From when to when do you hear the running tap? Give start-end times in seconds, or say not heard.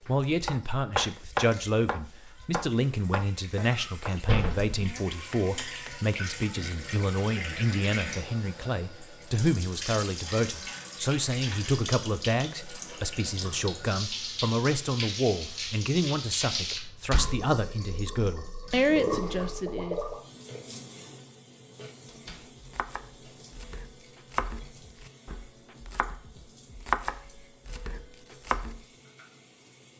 0.0-29.9.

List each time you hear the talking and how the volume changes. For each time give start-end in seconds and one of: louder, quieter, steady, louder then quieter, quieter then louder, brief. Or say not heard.
0.1-19.9 steady.